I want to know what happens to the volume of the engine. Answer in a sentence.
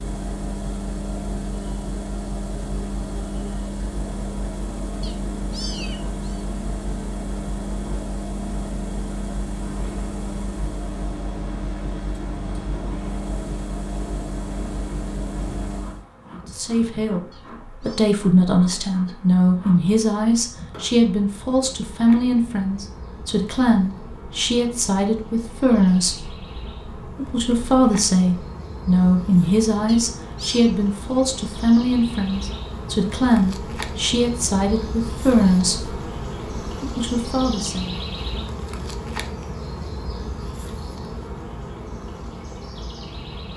The loudness of the engine stays about the same.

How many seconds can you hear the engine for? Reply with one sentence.
You can hear the engine for 16 seconds altogether.